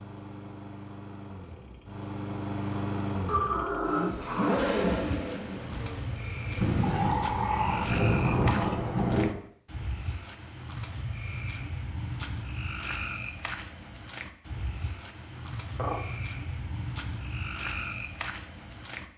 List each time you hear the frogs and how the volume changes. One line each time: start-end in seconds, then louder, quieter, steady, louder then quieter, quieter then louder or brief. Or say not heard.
4.7-19.1 steady.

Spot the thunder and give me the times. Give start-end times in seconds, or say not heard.
6.5-9.3.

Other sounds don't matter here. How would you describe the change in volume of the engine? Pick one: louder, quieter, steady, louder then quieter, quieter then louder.
louder then quieter.